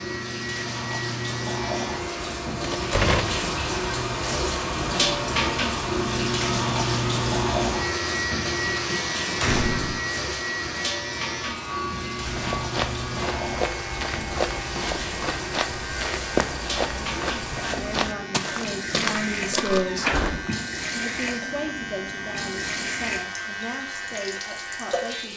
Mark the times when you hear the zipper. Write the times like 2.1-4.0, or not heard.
not heard.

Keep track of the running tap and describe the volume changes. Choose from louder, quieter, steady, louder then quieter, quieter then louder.
quieter.